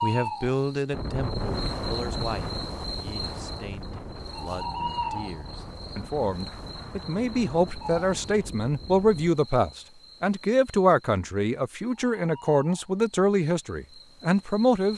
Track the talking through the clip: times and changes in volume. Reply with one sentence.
The talking can be heard from 0.0 to 14.9 s, getting quieter then louder.